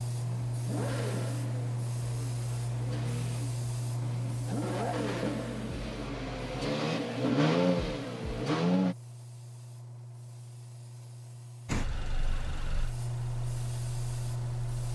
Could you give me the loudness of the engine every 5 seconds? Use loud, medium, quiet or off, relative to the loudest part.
medium, loud, quiet.